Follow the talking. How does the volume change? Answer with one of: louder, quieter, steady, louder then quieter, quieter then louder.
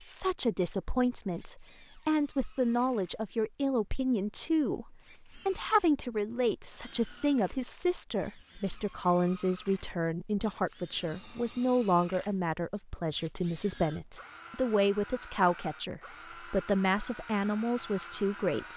steady.